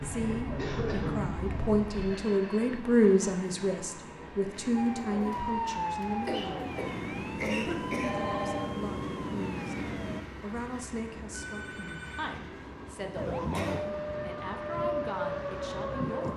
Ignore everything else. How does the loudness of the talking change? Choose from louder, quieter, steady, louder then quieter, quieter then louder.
quieter.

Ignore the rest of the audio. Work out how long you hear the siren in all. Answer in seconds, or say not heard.
11 s.